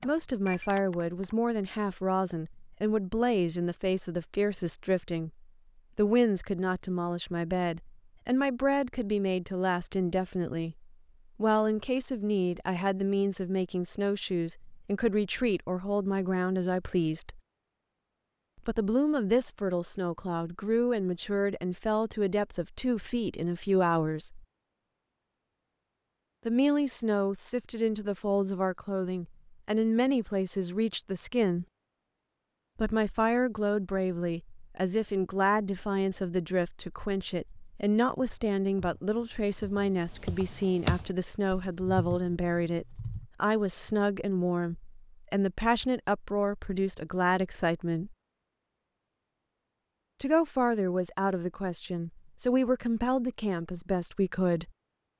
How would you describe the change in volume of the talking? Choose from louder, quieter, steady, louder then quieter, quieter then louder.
steady.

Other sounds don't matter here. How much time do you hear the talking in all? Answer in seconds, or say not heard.
48 s.